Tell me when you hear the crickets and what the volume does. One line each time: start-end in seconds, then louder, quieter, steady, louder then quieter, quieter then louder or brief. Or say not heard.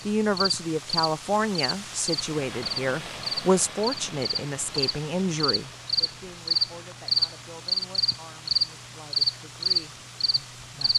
0.0-10.9 louder.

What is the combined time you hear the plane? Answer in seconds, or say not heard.
not heard.